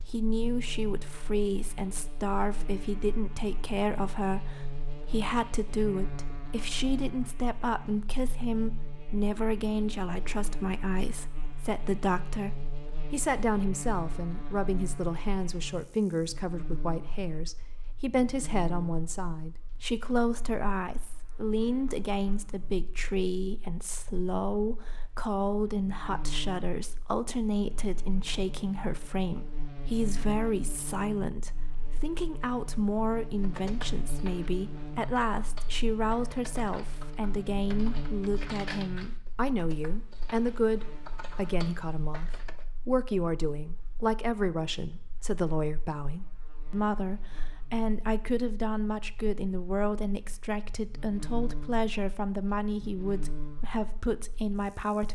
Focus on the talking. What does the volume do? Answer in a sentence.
The loudness of the talking stays about the same.